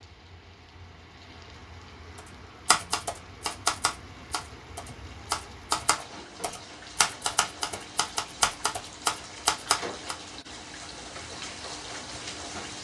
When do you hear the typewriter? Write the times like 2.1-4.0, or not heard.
2.1-10.2.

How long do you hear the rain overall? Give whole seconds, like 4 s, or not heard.
13 s.